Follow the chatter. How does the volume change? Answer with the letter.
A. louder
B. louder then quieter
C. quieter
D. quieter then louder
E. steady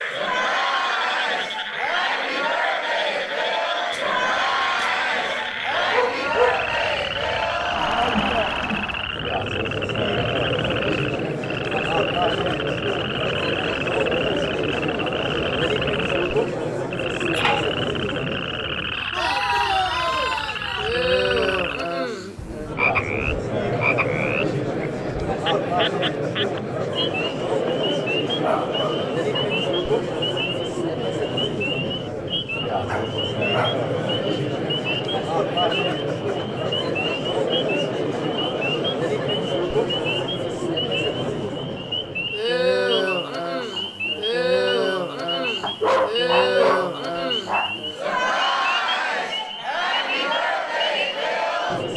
E.